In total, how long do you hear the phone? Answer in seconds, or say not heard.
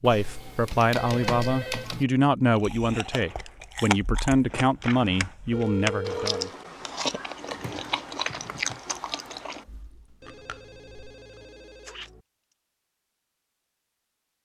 4 s.